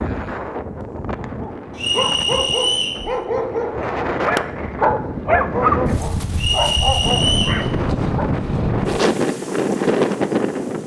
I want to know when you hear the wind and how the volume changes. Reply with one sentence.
You can hear the wind from 0.0 to 10.8 s, getting louder.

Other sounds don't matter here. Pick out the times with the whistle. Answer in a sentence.
The whistle can be heard from 1.8 to 3.0 s and from 6.3 to 7.6 s.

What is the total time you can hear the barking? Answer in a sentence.
You can hear the barking for 7 seconds altogether.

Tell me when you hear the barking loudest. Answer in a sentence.
The volume of the barking peaks at 6 seconds.